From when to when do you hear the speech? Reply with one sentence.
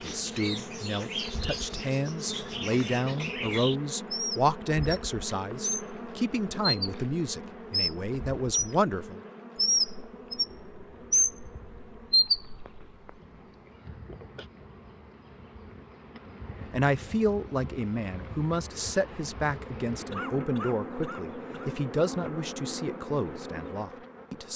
You can hear the speech from 0.0 to 9.2 s and from 16.7 to 24.5 s.